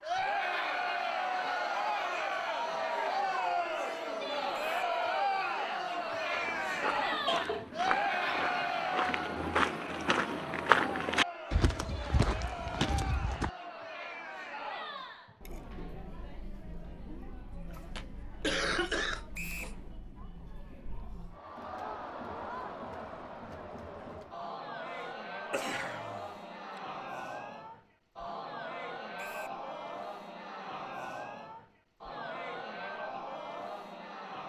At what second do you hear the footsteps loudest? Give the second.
11 s.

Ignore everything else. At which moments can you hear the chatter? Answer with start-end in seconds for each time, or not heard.
0.0-34.4.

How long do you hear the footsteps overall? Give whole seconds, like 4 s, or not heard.
7 s.